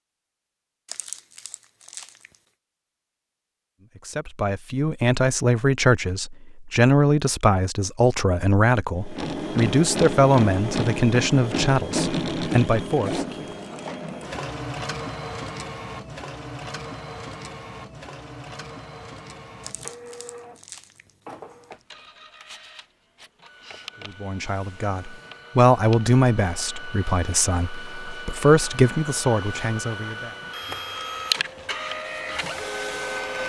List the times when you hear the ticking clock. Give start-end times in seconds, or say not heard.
not heard.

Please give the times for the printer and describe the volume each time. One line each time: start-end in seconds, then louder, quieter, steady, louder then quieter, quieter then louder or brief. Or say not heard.
9.0-33.4 quieter then louder.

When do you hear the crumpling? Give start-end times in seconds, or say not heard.
0.8-2.4, 19.6-21.6.